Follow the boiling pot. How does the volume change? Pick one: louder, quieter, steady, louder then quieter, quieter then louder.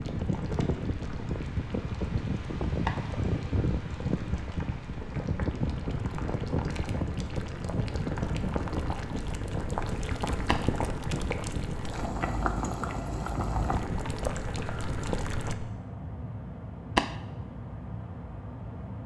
louder.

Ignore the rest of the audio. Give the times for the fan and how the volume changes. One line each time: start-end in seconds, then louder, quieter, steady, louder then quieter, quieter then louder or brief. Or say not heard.
0.0-19.0 quieter.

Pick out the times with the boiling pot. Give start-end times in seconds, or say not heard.
0.0-15.6.